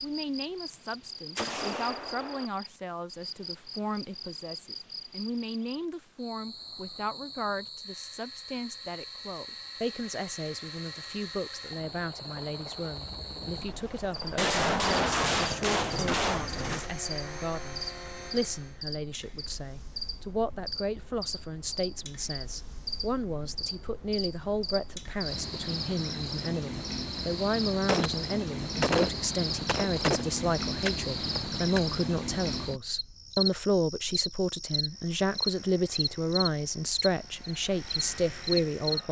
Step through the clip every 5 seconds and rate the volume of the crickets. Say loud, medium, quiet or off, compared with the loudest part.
medium, medium, medium, medium, medium, loud, loud, loud.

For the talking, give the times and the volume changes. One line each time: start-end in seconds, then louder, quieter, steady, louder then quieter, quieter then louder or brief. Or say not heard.
0.0-39.0 louder.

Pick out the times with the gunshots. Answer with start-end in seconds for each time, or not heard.
1.4-2.5, 14.3-16.9, 27.9-31.8.